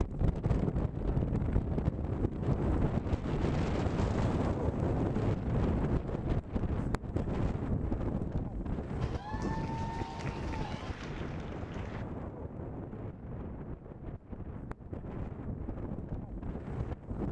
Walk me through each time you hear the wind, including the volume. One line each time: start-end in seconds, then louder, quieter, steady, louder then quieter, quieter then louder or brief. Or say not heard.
0.0-17.2 quieter.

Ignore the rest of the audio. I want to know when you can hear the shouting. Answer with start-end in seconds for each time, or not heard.
not heard.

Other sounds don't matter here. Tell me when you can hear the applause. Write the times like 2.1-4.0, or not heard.
9.0-12.1.